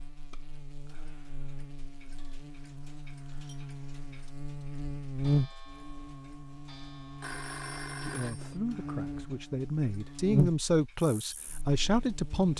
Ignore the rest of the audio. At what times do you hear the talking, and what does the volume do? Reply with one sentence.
You can hear the talking from 8.0 to 12.5 s, getting louder.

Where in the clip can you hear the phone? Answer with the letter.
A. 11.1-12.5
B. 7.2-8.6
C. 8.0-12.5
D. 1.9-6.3
B.